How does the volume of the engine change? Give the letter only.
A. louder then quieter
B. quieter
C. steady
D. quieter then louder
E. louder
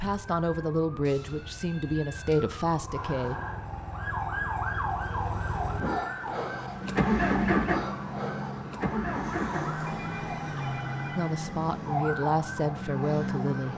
A.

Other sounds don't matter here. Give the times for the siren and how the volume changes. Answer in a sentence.
The siren can be heard from 0.1 to 13.7 s, getting louder.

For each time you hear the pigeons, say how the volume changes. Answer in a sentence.
You can't hear the pigeons here.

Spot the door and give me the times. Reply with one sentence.
You can't hear the door here.